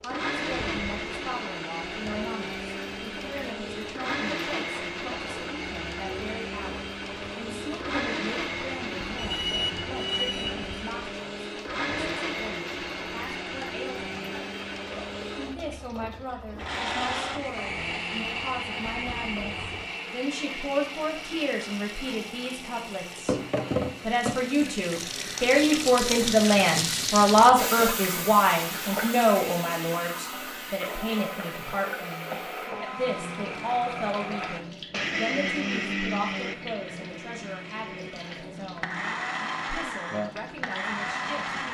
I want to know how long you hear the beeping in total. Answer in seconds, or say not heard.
2 s.